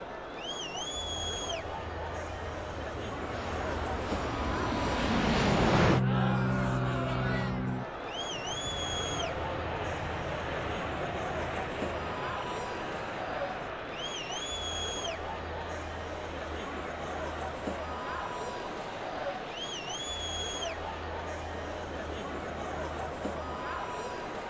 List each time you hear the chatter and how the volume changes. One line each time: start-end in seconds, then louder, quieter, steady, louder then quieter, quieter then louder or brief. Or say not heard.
0.0-24.4 steady.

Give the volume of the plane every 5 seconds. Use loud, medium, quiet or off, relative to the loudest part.
medium, loud, medium, quiet, quiet.